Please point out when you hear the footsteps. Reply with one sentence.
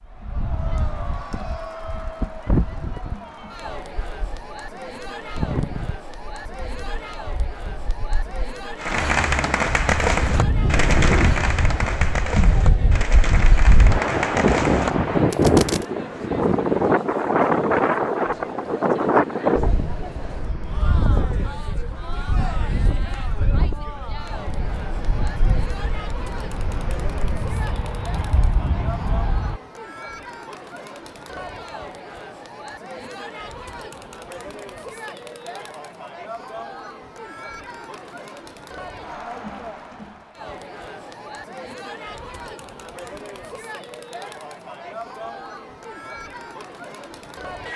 You can't hear the footsteps here.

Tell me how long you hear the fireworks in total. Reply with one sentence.
The fireworks can be heard for 7 seconds in total.